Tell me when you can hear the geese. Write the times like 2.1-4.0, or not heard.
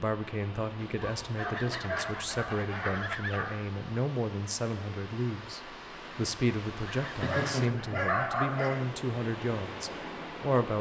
1.4-3.5, 6.8-8.4.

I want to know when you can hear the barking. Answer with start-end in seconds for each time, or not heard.
0.8-3.5, 7.2-8.8.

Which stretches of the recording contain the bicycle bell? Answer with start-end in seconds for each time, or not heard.
not heard.